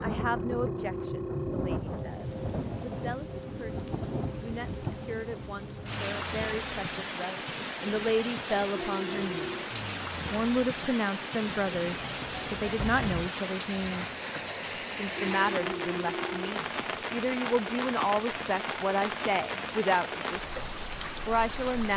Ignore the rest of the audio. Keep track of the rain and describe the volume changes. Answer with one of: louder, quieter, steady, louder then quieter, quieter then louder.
steady.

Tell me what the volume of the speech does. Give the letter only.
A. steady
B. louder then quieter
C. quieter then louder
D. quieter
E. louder
E.